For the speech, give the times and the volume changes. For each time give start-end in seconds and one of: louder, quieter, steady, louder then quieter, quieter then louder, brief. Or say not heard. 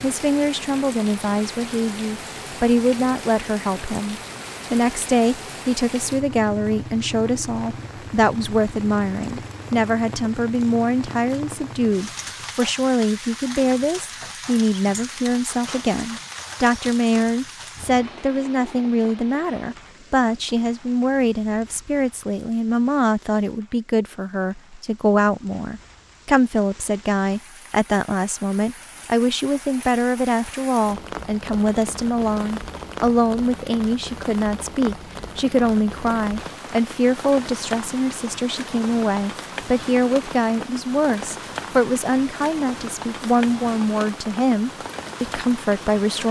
0.0-46.2 steady.